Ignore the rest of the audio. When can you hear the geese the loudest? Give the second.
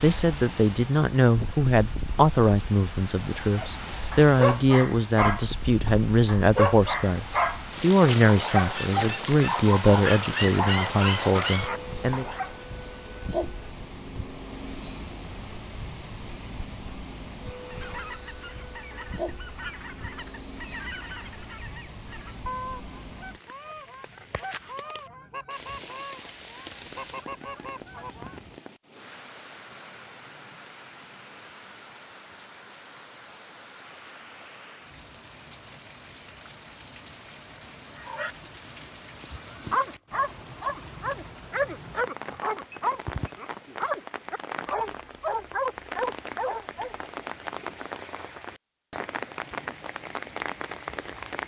23 s.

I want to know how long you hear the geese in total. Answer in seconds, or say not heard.
11 s.